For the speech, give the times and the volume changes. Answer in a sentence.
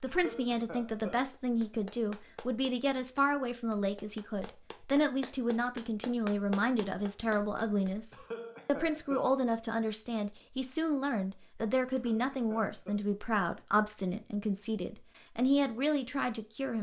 You can hear the speech from 0.0 to 16.7 s, at a steady volume.